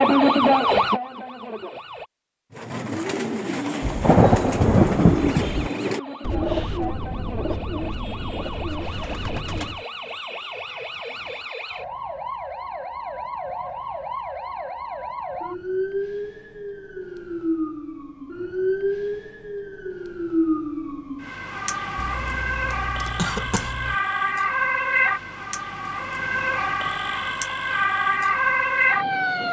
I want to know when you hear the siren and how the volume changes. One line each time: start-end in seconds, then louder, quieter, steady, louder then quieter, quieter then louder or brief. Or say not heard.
0.0-2.0 brief
5.2-29.4 louder.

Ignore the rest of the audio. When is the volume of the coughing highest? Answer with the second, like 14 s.
23 s.